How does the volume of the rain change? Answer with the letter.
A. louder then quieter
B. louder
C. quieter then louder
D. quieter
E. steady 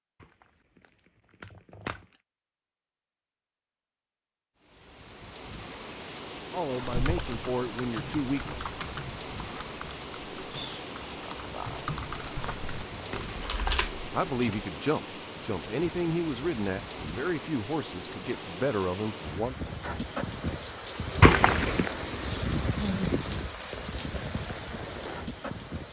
B.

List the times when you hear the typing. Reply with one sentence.
The typing can be heard from 6.7 to 14.7 s.